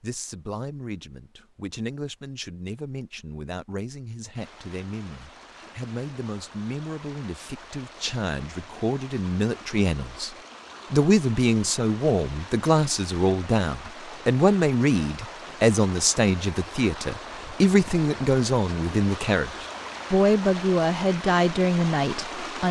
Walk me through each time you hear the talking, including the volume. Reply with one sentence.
The talking can be heard from 0.0 to 22.6 s, getting louder.